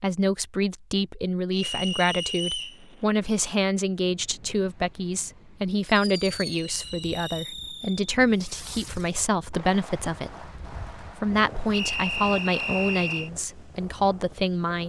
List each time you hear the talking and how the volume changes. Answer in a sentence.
You can hear the talking from 0.0 to 14.8 s, at a steady volume.